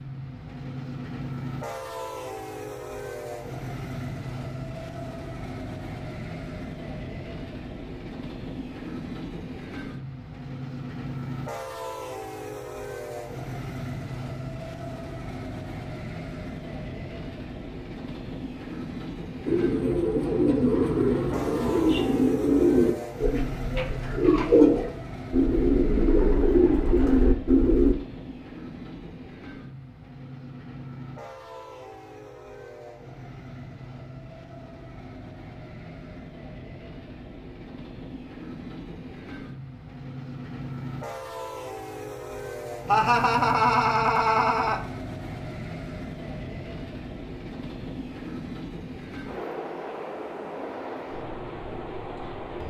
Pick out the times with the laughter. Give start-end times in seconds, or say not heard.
42.9-44.8.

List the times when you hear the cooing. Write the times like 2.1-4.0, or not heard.
19.4-27.9.